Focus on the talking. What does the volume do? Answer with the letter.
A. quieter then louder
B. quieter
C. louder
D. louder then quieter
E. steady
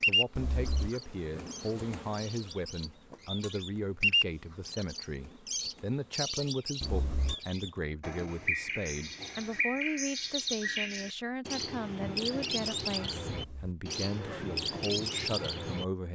E.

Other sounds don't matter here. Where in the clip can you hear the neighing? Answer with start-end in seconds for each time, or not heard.
0.3-1.4, 6.8-7.3, 13.2-14.5.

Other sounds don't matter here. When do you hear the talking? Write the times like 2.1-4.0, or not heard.
0.1-16.0.